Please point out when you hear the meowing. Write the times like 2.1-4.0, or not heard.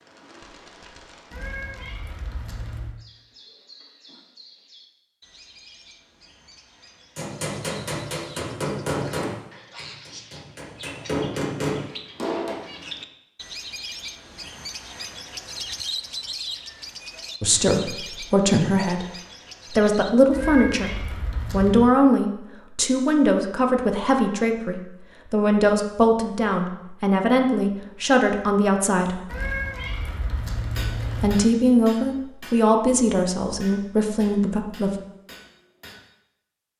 1.3-3.0, 20.3-21.8, 29.2-31.3.